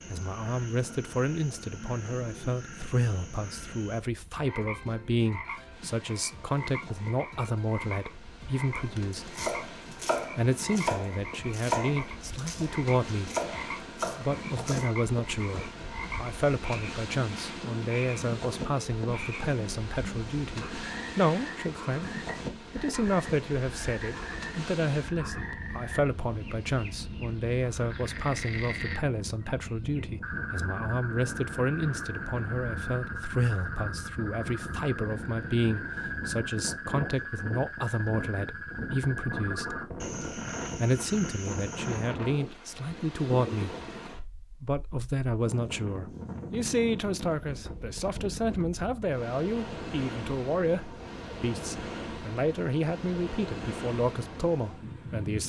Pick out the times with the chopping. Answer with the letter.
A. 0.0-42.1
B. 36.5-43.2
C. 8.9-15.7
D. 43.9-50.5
C.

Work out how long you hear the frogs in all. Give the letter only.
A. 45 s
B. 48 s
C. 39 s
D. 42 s
D.